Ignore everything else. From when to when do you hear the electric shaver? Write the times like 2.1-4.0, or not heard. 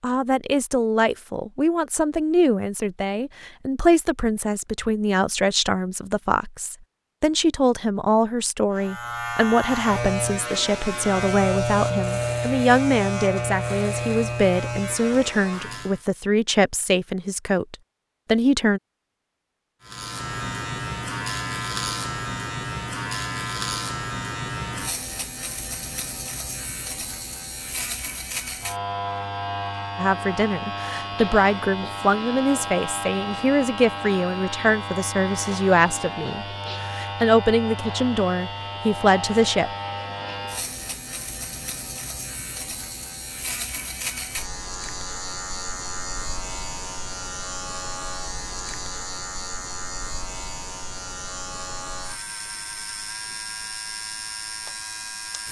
8.7-16.0, 19.8-55.4.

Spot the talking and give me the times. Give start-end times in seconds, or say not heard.
0.0-18.8, 29.9-39.7.